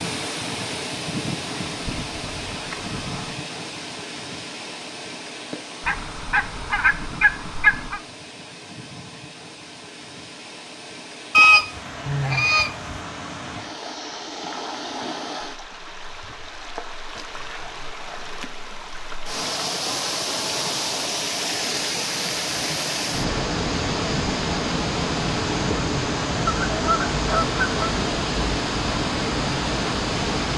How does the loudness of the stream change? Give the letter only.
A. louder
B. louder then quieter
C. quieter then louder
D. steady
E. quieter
C.